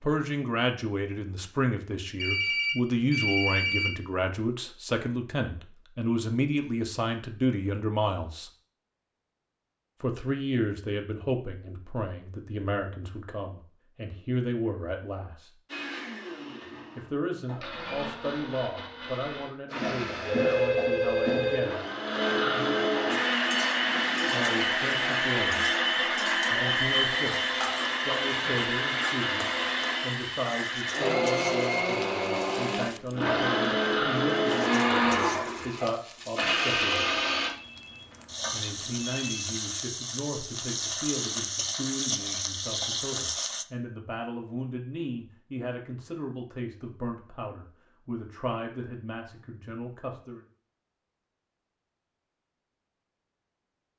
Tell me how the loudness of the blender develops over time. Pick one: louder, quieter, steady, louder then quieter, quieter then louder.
louder.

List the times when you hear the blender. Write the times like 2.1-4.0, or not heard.
15.7-37.5.